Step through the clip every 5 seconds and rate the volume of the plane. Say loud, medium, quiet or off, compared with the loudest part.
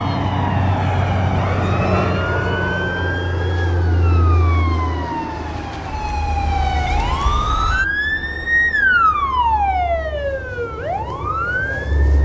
loud, quiet, medium.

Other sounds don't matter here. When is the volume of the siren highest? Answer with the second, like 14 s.
9 s.